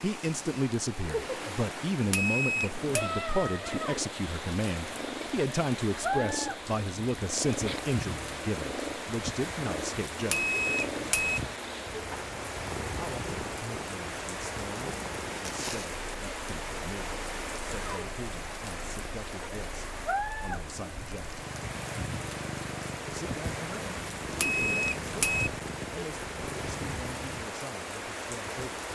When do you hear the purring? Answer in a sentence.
The purring can be heard from 2.8 to 27.4 s.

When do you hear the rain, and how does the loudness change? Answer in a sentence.
You can hear the rain from 0.0 to 28.9 s, at a steady volume.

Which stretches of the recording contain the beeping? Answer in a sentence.
You can hear the beeping from 2.0 to 3.1 s, from 10.2 to 11.4 s and from 24.2 to 25.5 s.